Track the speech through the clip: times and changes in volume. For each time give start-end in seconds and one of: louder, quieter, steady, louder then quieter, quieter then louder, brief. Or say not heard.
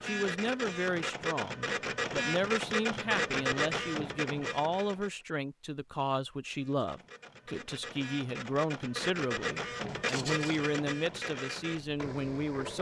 0.0-12.7 steady.